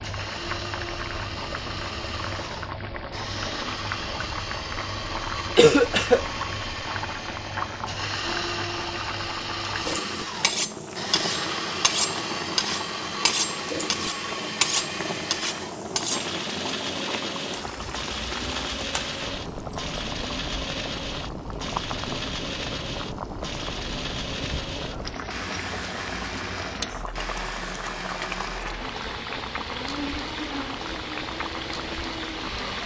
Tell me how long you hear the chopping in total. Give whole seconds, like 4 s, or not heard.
not heard.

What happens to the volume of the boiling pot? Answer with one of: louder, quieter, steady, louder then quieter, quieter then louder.
steady.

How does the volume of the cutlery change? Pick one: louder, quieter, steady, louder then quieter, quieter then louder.
steady.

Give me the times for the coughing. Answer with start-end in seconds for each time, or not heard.
5.5-6.2.